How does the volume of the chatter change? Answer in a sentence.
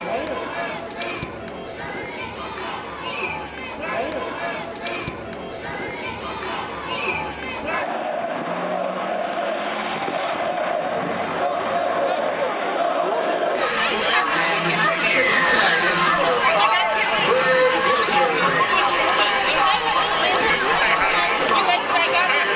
The loudness of the chatter goes up.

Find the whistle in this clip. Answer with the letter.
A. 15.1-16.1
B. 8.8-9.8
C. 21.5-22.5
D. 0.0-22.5
A.